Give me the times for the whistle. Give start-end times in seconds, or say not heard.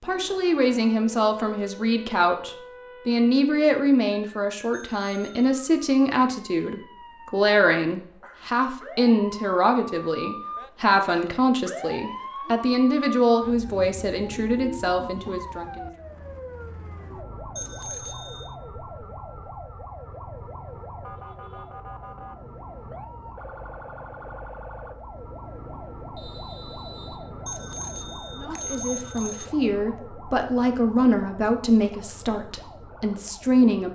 26.1-27.2.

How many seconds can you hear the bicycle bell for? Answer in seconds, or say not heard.
4 s.